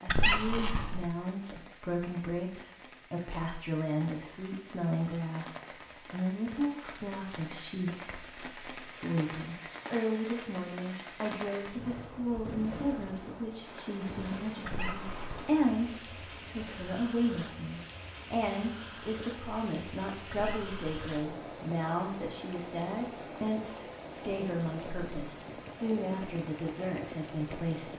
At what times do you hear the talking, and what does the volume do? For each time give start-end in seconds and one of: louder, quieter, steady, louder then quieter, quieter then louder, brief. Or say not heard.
0.0-27.9 steady.